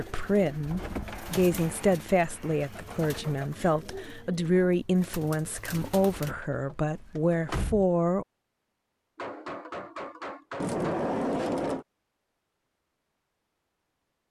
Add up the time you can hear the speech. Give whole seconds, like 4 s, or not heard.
8 s.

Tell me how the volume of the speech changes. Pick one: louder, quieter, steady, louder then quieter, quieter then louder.
steady.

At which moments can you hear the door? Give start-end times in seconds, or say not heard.
0.7-1.4, 6.2-7.8, 10.6-11.8.